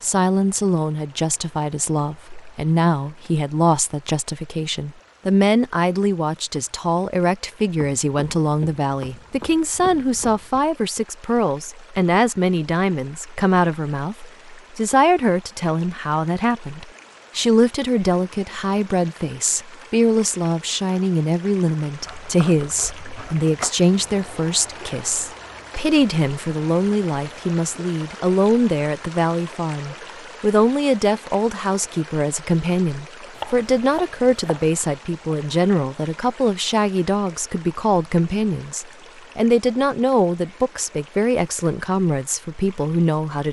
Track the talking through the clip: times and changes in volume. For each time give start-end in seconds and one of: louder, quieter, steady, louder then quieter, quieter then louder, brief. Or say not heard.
0.0-43.4 steady.